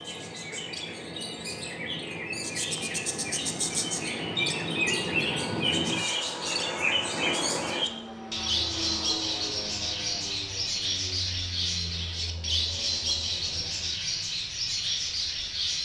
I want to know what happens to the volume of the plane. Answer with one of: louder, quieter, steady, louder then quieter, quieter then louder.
louder then quieter.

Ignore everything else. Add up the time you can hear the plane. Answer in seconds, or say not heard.
14 s.